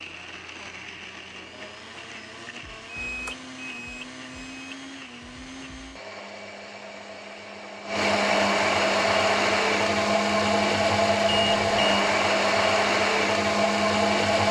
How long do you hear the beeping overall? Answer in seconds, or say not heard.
3 s.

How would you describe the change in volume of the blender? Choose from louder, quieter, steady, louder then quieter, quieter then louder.
louder.